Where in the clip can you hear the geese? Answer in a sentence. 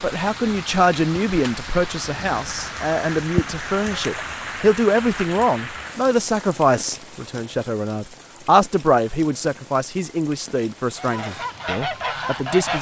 You can hear the geese from 10.9 to 12.7 s.